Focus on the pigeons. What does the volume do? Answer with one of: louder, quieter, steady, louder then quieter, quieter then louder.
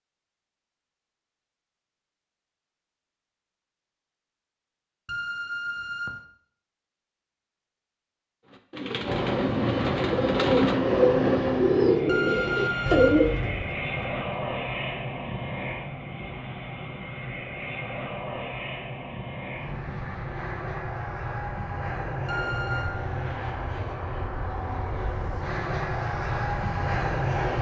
louder.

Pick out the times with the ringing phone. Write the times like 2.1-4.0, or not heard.
5.0-6.2, 12.1-13.2, 22.2-22.9.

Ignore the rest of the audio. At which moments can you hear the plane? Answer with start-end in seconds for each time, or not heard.
9.0-27.5.